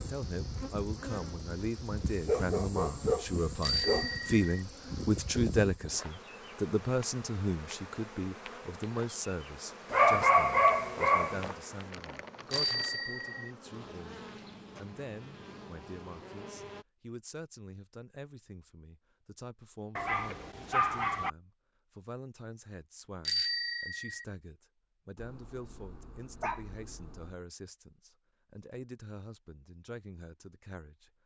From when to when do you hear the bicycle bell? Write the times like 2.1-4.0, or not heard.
3.6-4.6, 12.5-13.5, 23.2-24.2.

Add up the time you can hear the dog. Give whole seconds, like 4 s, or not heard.
7 s.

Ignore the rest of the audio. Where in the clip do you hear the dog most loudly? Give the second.
10 s.